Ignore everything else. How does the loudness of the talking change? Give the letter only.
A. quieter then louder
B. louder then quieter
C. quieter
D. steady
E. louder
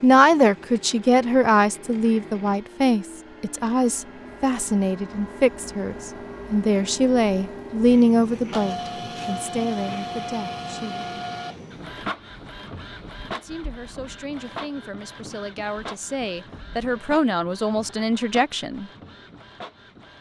A.